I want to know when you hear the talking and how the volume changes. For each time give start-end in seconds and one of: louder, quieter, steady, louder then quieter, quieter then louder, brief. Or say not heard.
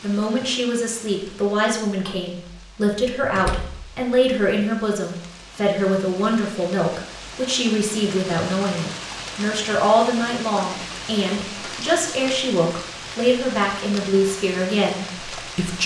0.0-15.8 steady.